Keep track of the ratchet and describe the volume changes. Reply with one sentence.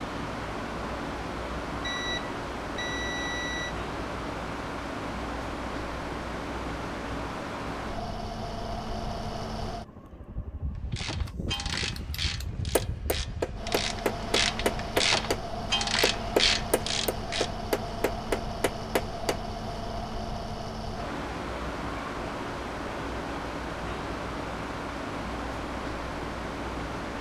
The loudness of the ratchet goes down, then up.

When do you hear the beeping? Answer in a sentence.
You can hear the beeping from 1.8 to 3.8 s.